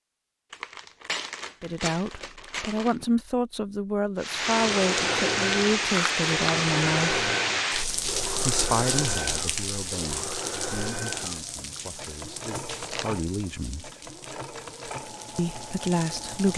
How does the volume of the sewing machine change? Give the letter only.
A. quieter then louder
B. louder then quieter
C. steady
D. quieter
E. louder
D.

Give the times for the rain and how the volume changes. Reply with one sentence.
The rain can be heard from 4.2 to 16.5 s, getting quieter.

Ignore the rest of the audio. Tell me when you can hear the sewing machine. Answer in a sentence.
You can hear the sewing machine from 4.5 to 16.5 s.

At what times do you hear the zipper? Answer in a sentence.
The zipper can't be heard in this clip.